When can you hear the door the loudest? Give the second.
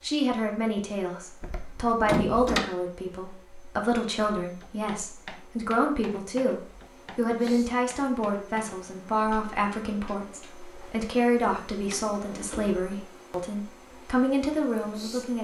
2 s.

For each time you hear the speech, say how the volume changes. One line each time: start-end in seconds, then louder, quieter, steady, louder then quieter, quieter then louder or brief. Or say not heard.
0.0-15.3 steady.